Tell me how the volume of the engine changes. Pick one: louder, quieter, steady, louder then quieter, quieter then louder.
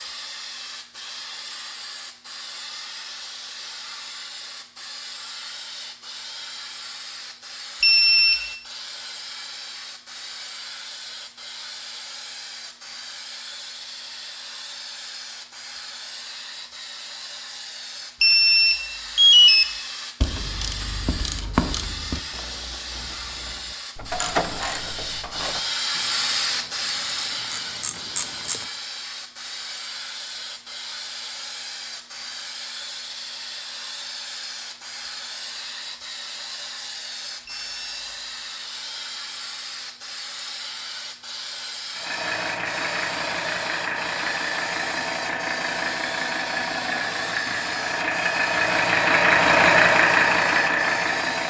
louder.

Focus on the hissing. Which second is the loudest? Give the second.
26 s.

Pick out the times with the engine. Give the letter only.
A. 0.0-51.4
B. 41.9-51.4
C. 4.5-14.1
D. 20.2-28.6
B.